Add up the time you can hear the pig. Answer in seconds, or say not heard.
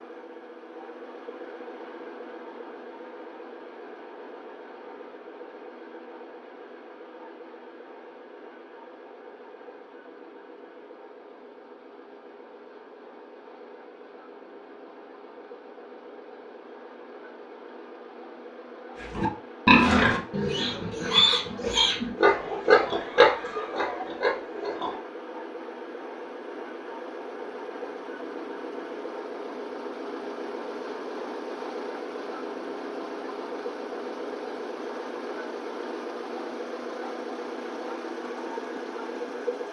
6 s.